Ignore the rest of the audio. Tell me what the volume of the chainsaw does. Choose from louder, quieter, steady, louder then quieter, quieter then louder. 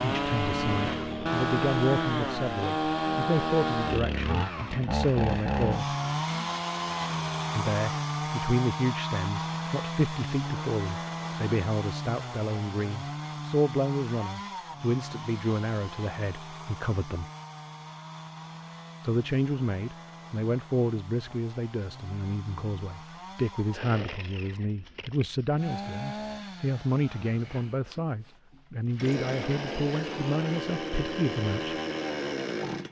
quieter then louder.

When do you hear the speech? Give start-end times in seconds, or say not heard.
0.0-5.9, 7.5-17.2, 19.0-31.8.